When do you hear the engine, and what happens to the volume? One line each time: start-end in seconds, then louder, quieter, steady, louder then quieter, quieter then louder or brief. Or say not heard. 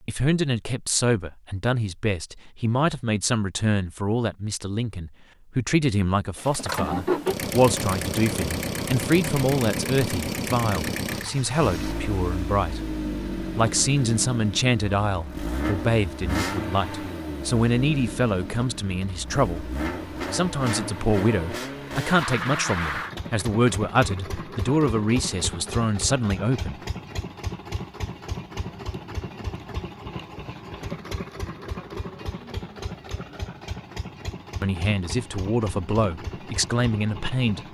6.3-37.6 quieter.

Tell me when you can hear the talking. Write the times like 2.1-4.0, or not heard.
0.1-19.7, 20.3-26.8, 34.6-37.6.